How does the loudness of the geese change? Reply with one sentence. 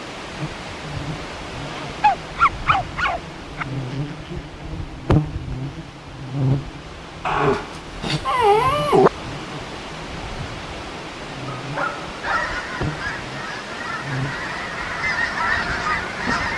The volume of the geese goes up.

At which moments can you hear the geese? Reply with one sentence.
The geese can be heard from 12.2 to 16.5 s.